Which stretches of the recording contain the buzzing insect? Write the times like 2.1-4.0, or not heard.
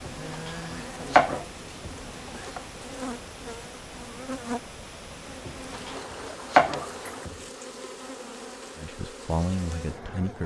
0.0-10.4.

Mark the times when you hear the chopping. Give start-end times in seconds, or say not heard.
0.1-2.6, 5.5-7.5.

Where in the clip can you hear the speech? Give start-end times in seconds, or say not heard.
8.8-10.4.